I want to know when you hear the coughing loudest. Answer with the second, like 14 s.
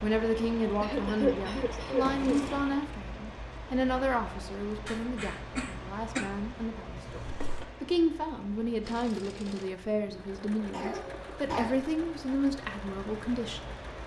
1 s.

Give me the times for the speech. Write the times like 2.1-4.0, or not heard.
0.0-13.6.